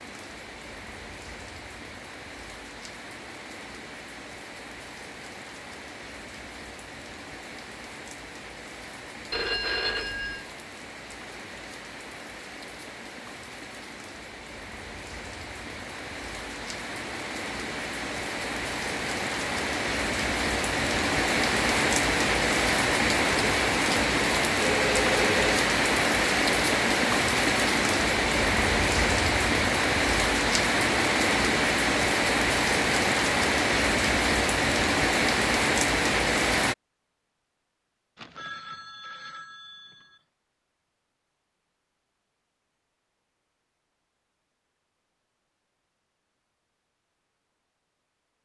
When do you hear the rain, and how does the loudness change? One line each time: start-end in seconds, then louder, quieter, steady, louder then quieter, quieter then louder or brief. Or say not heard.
0.0-36.8 louder.